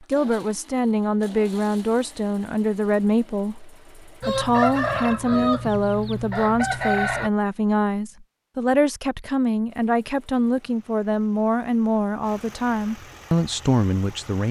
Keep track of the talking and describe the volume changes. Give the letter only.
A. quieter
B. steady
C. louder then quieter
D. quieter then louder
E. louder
B.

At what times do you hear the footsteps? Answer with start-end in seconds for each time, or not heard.
not heard.